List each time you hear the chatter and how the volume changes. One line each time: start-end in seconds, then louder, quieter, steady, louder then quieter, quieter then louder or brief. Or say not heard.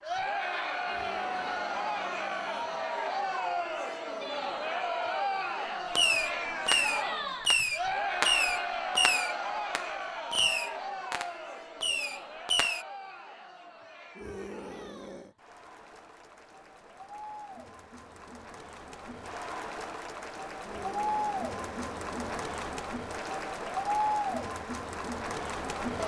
0.0-26.0 quieter then louder.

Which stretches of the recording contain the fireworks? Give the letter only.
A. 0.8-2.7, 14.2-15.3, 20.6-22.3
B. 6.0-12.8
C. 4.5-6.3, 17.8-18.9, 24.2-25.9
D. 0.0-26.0
B.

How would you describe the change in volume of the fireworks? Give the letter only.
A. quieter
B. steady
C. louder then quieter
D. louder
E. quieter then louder
A.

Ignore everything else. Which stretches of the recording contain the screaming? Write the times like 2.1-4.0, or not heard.
0.8-2.7, 14.2-15.3, 20.6-22.3.